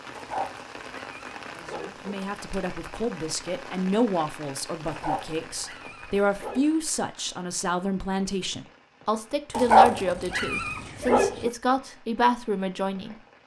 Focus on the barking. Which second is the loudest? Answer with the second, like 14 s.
10 s.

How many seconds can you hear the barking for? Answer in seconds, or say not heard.
6 s.